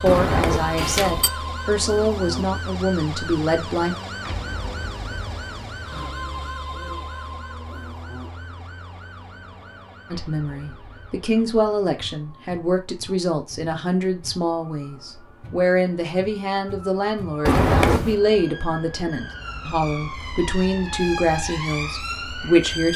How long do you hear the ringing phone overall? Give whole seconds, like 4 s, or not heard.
2 s.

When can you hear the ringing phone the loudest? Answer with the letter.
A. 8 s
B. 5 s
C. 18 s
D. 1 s
C.